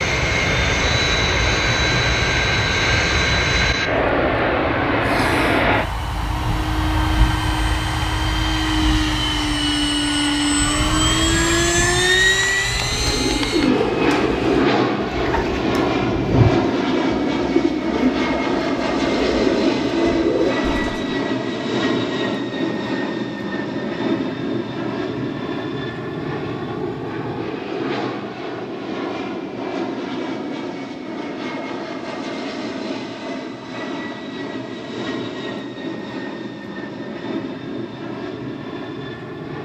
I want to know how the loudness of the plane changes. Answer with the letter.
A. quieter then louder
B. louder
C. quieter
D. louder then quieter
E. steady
C.